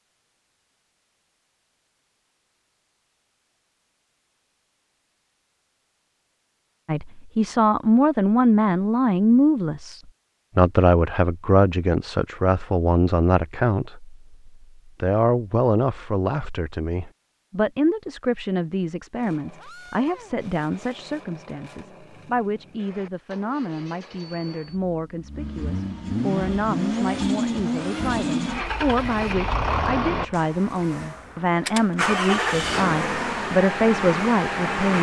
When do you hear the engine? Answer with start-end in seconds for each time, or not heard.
19.1-34.9.